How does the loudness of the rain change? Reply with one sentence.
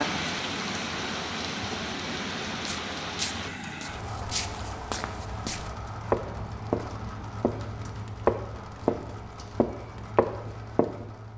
The volume of the rain goes down.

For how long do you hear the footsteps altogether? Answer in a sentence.
You can hear the footsteps for 8 seconds altogether.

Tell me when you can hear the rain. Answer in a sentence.
You can hear the rain from 0.0 to 11.3 s.